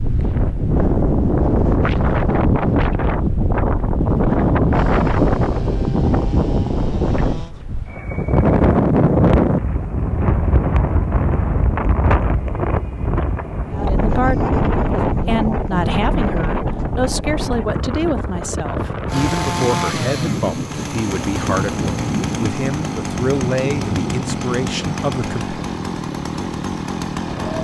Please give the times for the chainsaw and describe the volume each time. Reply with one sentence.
The chainsaw can be heard briefly from 4.7 to 7.5 s; and from 19.1 to 27.5 s, at a steady volume.